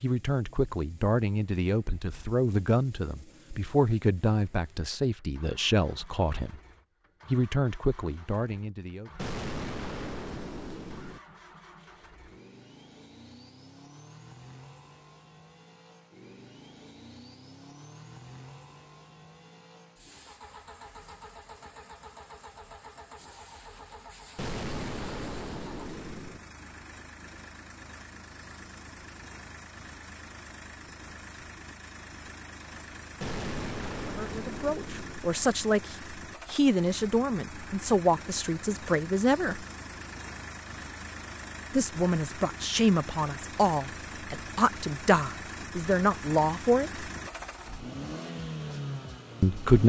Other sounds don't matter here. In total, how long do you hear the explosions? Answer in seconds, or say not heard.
6 s.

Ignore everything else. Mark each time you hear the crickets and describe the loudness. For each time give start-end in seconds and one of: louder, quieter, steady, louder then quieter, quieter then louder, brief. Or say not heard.
not heard.